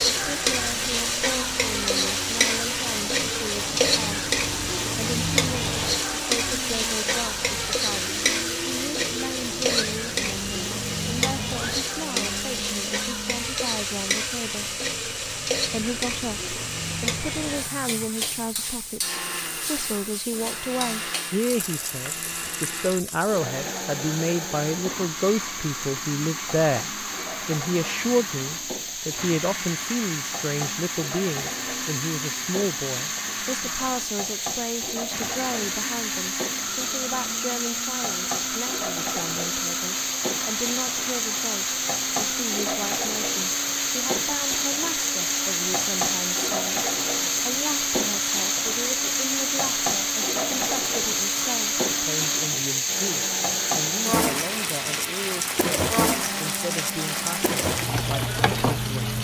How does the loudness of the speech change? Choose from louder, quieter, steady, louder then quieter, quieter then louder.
louder then quieter.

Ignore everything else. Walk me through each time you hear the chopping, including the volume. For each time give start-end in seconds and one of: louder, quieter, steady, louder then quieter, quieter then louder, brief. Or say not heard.
not heard.